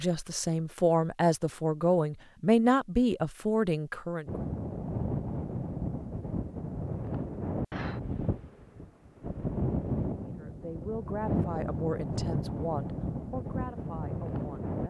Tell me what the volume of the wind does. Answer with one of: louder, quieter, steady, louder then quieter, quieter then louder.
steady.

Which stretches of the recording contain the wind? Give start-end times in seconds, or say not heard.
4.2-14.8.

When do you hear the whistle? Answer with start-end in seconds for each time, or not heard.
not heard.